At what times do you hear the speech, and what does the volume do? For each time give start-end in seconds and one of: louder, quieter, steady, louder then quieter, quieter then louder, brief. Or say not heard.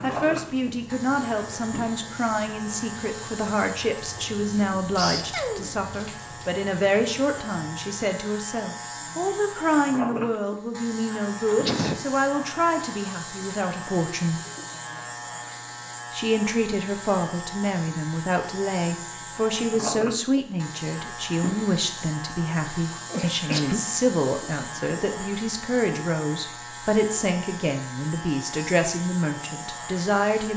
0.0-14.4 steady
16.1-30.5 steady.